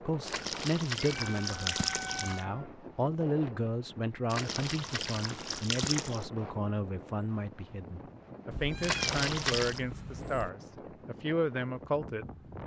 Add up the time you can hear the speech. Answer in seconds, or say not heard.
12 s.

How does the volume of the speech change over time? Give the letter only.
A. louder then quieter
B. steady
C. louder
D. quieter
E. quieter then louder
B.